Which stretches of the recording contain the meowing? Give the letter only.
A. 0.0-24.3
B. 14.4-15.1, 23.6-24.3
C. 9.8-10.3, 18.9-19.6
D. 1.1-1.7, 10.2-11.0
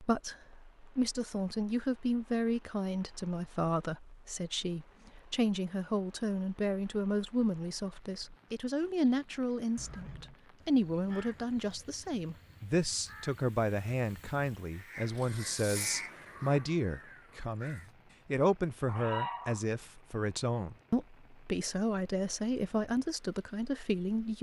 C.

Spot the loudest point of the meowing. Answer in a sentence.
The loudest moment of the meowing is at 19 seconds.